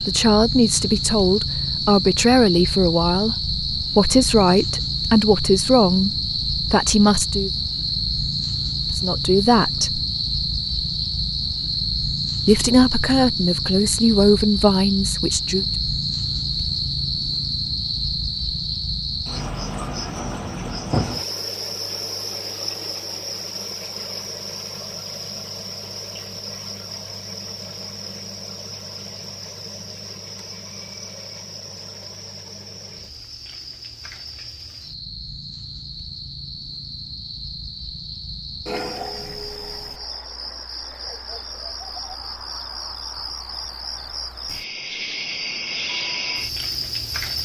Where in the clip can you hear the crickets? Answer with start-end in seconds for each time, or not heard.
0.0-47.4.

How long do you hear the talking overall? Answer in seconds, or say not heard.
12 s.